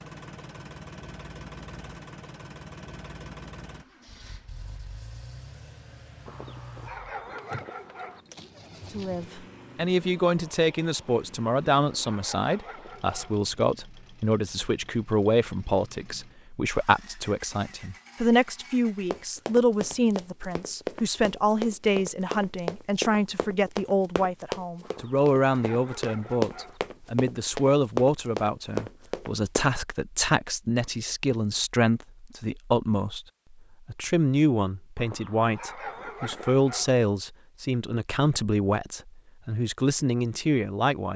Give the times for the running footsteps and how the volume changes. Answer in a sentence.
You can hear the running footsteps from 19.1 to 29.7 s, getting louder.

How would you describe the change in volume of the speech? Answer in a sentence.
The volume of the speech stays about the same.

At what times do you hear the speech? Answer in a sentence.
The speech can be heard from 8.9 to 33.2 s and from 33.9 to 41.1 s.